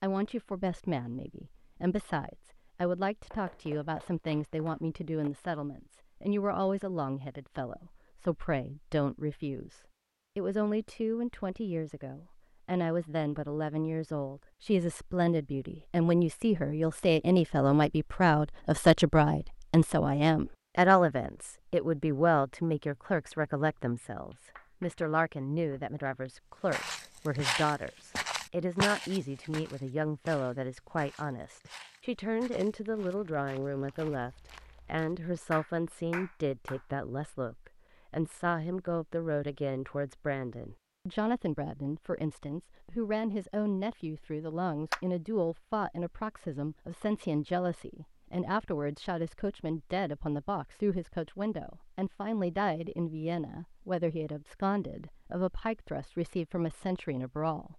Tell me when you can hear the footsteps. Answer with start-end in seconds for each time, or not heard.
26.7-35.2.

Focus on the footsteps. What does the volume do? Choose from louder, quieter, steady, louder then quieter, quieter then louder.
quieter.